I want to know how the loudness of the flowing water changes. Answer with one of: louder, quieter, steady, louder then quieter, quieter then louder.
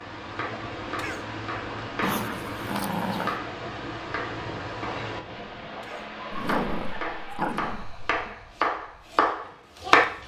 quieter.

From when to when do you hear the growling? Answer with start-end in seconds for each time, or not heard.
2.0-3.4, 6.3-8.3.